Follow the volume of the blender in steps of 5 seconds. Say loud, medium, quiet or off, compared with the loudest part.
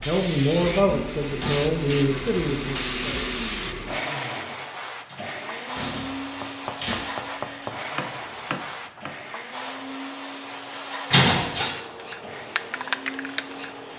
loud, medium, medium.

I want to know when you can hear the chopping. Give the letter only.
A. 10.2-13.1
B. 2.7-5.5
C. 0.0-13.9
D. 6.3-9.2
D.